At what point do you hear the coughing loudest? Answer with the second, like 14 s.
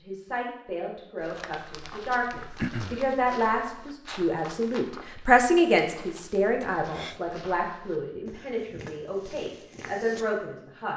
3 s.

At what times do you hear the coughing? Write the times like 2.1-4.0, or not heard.
2.5-3.0, 6.6-7.2.